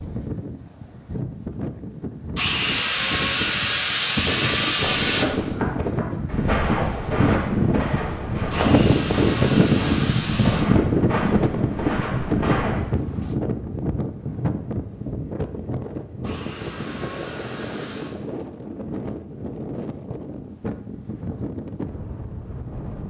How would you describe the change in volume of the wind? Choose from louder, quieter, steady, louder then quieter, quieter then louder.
louder then quieter.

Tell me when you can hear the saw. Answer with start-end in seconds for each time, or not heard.
2.4-5.2, 8.5-10.7, 16.2-18.1.